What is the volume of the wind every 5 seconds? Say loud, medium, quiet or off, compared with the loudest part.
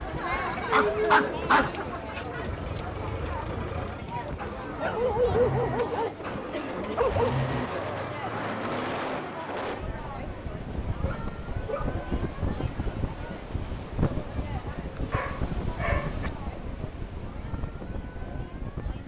medium, loud, loud, loud.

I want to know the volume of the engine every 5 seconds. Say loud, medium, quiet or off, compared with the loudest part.
medium, loud, off, off.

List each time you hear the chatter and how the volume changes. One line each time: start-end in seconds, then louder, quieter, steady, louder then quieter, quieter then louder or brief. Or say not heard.
0.0-19.0 quieter.